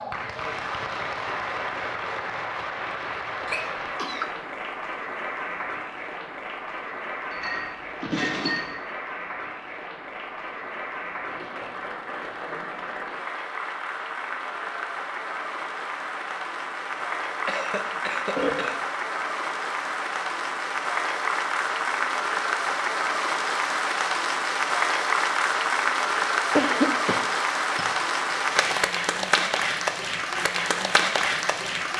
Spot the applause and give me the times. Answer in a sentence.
The applause can be heard from 0.0 to 31.9 s.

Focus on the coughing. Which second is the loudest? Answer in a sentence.
The loudest moment of the coughing is at 27 seconds.